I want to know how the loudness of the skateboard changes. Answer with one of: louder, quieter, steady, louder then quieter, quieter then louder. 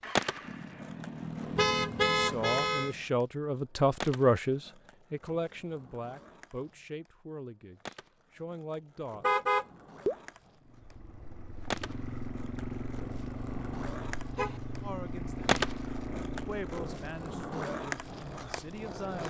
quieter then louder.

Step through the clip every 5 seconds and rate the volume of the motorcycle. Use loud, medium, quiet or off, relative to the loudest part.
loud, off, loud, loud.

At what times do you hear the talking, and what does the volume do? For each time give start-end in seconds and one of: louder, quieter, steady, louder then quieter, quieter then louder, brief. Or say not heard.
2.1-9.2 louder then quieter
14.8-15.5 brief
16.4-19.2 brief.